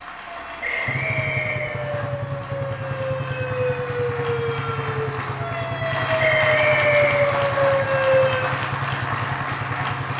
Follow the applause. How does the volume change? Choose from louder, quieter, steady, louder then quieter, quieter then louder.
louder.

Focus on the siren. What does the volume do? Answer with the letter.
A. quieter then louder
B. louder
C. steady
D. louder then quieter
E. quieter
B.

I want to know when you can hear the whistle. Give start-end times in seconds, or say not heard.
0.6-2.1, 6.2-7.7.